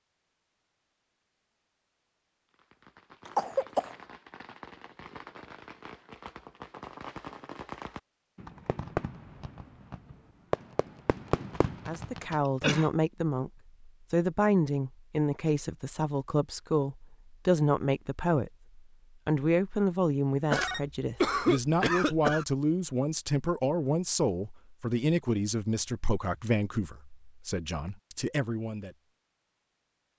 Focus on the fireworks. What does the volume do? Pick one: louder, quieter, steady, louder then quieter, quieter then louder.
louder.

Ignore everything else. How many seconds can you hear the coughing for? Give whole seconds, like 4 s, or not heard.
3 s.